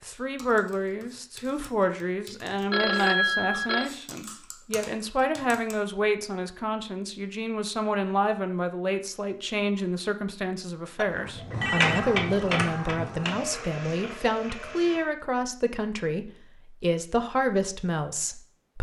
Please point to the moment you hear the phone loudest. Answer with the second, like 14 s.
3 s.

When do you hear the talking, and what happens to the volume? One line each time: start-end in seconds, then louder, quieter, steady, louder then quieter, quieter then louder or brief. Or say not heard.
0.0-18.7 steady.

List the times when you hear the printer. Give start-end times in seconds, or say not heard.
11.1-15.1.